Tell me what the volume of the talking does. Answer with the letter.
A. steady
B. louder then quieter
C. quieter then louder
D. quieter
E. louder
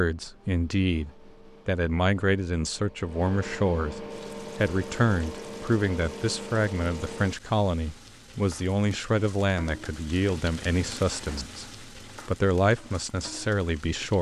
A.